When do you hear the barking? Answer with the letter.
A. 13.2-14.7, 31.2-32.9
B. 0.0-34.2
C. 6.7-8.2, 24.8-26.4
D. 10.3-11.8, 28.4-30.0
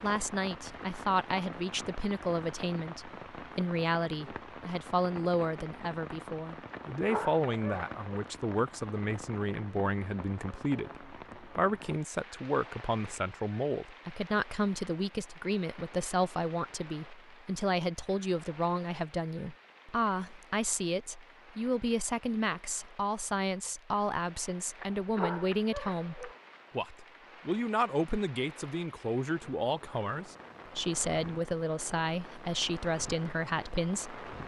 C.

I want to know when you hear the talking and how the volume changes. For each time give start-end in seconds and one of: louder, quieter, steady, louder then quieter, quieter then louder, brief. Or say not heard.
0.0-34.2 steady.